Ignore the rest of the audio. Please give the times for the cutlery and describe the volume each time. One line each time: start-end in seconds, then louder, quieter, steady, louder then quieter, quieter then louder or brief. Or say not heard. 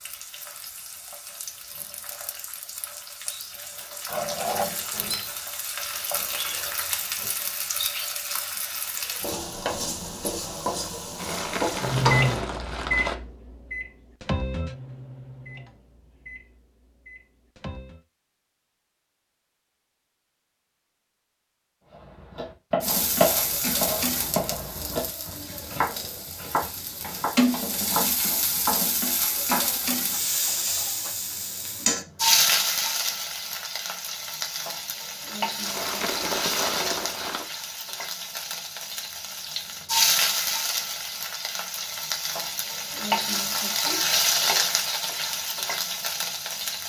not heard.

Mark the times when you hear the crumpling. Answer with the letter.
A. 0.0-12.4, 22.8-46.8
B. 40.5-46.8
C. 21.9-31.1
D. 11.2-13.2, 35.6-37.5
D.